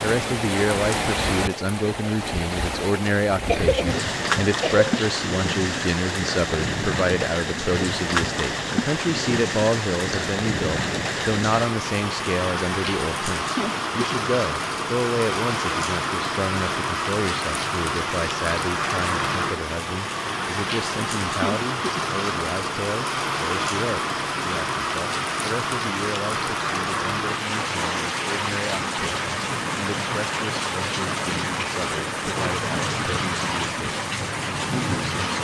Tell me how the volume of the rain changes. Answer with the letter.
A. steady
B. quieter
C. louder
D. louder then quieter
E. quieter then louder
A.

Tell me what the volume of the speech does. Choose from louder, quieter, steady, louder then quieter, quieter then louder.
quieter.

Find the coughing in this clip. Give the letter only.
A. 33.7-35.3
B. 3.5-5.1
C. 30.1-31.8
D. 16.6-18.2
B.